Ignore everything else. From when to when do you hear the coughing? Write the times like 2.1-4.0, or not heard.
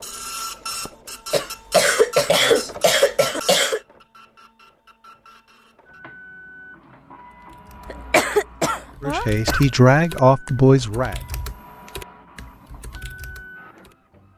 1.3-3.8, 7.8-9.7.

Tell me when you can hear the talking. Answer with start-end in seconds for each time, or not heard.
9.0-11.2.